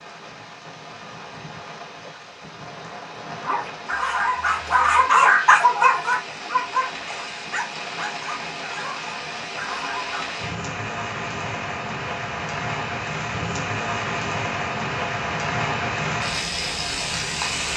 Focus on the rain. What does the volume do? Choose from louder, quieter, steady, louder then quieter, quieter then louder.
louder.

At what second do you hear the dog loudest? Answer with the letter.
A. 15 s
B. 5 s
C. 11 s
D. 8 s
B.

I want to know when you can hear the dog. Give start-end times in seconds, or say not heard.
3.4-10.2.